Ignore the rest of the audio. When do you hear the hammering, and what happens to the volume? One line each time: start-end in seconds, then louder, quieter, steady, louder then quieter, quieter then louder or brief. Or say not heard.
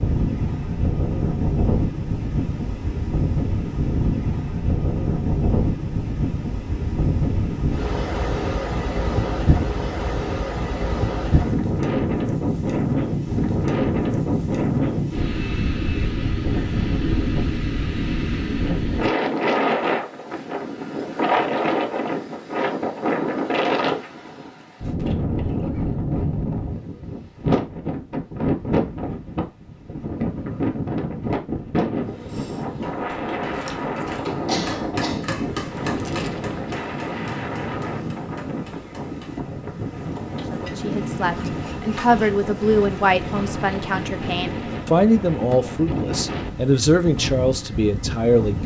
32.2-39.4 louder then quieter.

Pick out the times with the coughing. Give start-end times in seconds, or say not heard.
34.5-35.2.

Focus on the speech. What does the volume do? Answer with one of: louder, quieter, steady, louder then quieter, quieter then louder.
steady.